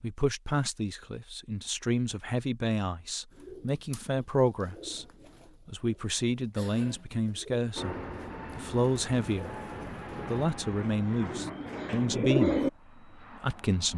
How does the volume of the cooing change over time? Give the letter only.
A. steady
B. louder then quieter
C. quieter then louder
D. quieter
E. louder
E.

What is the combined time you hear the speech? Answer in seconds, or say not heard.
12 s.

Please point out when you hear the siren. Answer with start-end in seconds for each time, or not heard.
not heard.